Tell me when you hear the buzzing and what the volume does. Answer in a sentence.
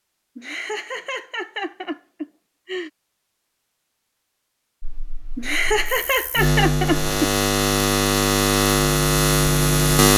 The buzzing can be heard from 4.8 to 10.1 s, getting louder.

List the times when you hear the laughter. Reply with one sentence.
The laughter can be heard from 0.3 to 2.9 s and from 5.3 to 7.3 s.